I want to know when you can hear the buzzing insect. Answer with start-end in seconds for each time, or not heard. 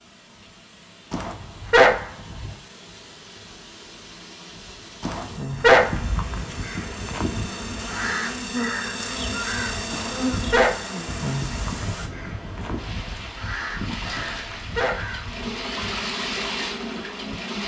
5.1-17.6.